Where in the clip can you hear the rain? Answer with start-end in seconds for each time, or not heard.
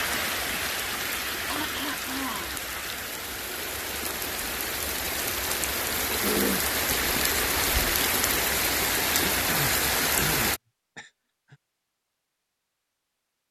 0.0-10.6.